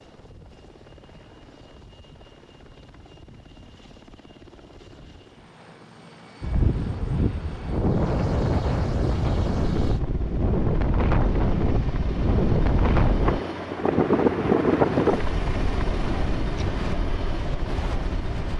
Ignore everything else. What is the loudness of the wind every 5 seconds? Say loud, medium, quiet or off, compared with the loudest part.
off, loud, loud, medium.